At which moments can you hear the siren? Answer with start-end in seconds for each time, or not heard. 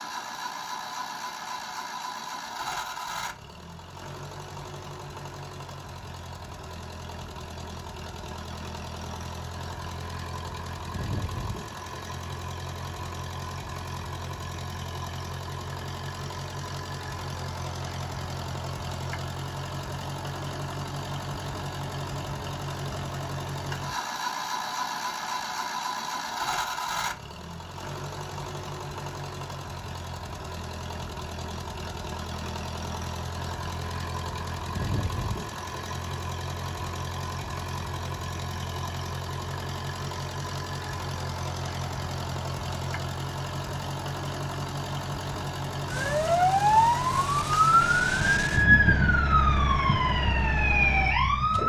45.9-51.6.